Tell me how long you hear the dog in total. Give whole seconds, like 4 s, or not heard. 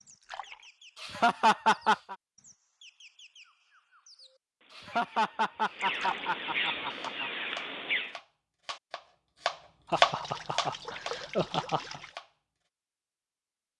not heard.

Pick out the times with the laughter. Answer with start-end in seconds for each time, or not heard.
1.0-2.1, 4.7-7.3, 9.9-12.0.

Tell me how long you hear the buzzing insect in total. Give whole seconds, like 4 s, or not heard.
not heard.